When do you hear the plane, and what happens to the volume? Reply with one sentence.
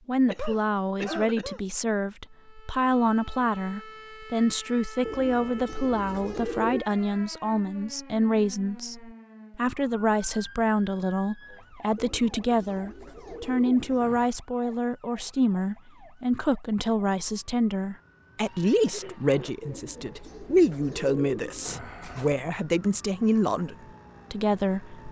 The plane can't be heard in this clip.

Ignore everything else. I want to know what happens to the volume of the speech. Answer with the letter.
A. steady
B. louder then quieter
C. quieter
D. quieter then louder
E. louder
A.